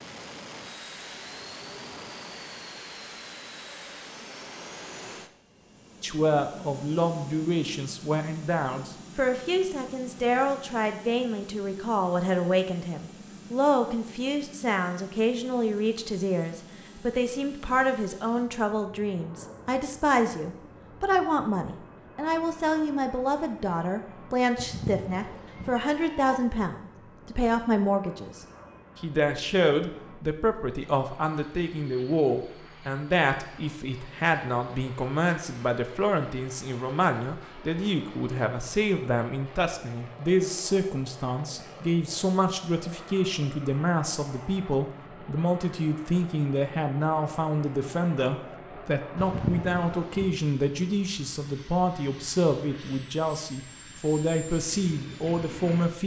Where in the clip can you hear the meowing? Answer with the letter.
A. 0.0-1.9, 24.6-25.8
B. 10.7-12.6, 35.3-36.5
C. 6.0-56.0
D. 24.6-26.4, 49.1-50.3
D.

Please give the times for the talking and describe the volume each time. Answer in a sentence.
You can hear the talking from 6.0 to 56.0 s, at a steady volume.